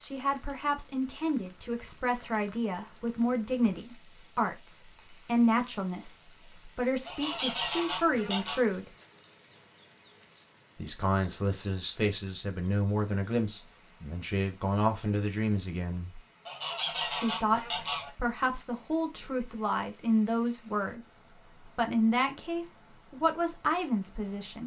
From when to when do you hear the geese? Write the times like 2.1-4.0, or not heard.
7.0-8.6, 16.4-18.1.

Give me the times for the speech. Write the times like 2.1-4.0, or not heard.
0.0-8.9, 10.8-16.2, 16.9-21.1, 21.8-24.6.